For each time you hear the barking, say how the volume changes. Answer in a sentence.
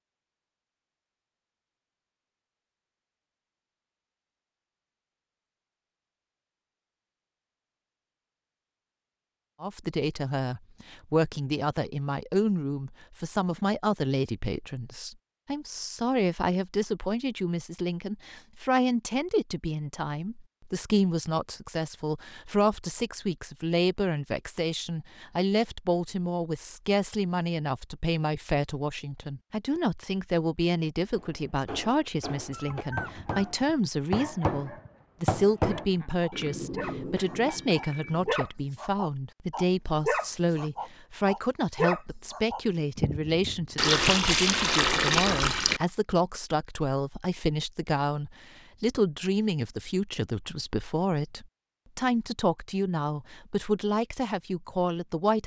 The barking can be heard from 32.4 to 43.8 s, getting louder.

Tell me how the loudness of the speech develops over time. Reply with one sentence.
The volume of the speech stays about the same.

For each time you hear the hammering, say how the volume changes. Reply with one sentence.
You can hear the hammering from 31.1 to 38.4 s, getting louder then quieter.